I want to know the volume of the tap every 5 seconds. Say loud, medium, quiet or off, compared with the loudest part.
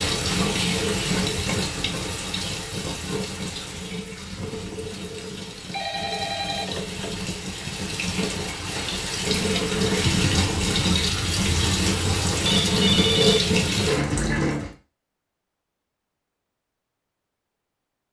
medium, medium, loud, off.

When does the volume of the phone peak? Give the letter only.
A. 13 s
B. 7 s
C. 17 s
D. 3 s
A.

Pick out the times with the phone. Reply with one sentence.
You can hear the phone from 5.7 to 7.2 s and from 12.7 to 13.4 s.